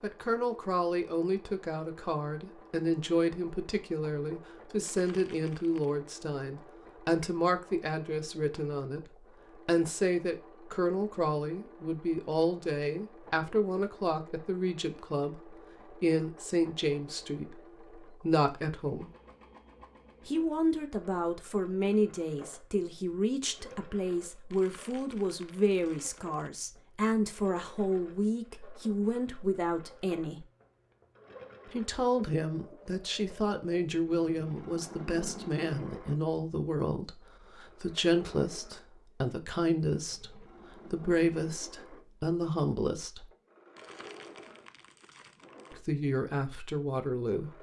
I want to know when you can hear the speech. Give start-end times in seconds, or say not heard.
0.0-19.1, 20.2-30.4, 31.7-43.3, 45.7-47.5.